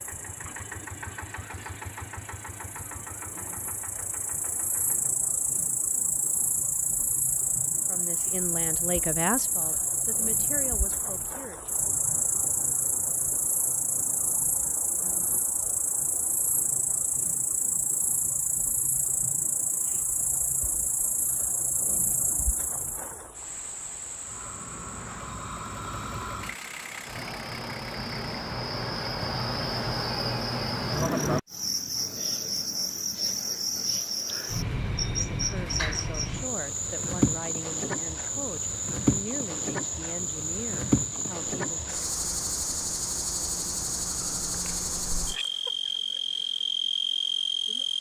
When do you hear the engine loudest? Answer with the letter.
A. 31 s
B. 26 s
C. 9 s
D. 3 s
B.